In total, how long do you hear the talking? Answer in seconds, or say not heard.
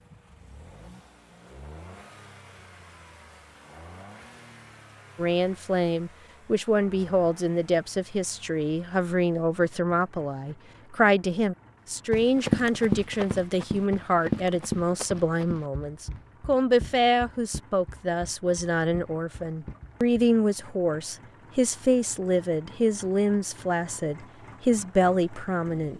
21 s.